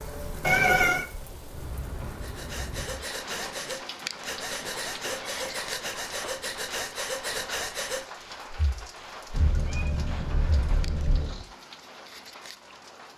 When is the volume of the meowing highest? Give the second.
1 s.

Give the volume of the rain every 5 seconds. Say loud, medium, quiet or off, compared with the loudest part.
loud, loud, medium.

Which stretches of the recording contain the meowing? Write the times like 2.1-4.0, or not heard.
0.4-1.1, 4.5-6.3, 9.3-11.4.